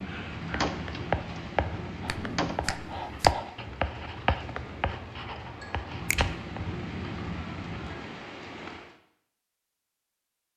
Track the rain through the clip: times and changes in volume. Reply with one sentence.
You can hear the rain from 0.0 to 8.9 s, getting quieter then louder.